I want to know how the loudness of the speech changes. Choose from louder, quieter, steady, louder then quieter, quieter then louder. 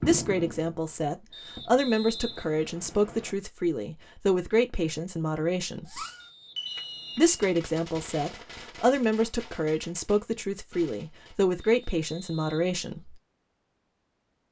steady.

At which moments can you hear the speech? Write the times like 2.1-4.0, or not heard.
0.0-6.0, 7.2-13.2.